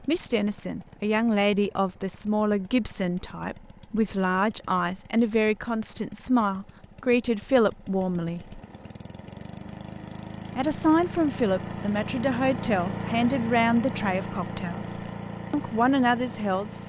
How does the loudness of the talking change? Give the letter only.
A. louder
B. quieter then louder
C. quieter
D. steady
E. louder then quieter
D.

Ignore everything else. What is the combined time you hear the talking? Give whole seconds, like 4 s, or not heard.
15 s.